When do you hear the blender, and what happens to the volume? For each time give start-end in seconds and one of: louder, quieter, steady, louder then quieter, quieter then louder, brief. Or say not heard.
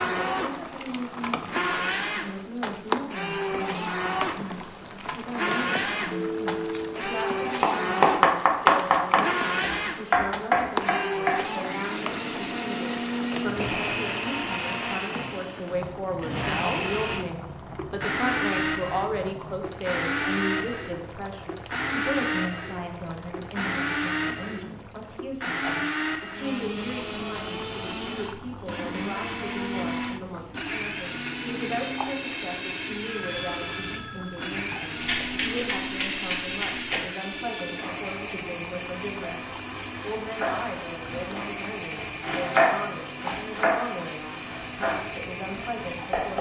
0.0-46.3 quieter.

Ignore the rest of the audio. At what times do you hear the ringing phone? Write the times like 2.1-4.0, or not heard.
6.1-7.0, 33.0-34.5.